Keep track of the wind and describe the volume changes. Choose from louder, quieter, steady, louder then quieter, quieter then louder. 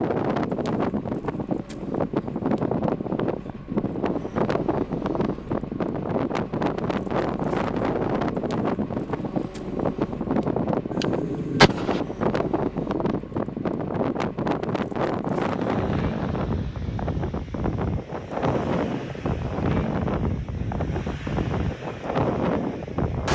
steady.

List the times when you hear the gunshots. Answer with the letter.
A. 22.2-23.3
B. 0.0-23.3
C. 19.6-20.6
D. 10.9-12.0
D.